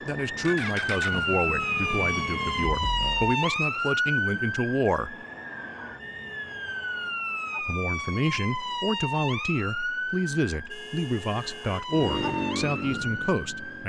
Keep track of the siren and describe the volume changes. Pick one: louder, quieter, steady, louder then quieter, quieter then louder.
quieter.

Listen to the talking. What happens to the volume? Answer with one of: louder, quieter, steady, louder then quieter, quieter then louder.
steady.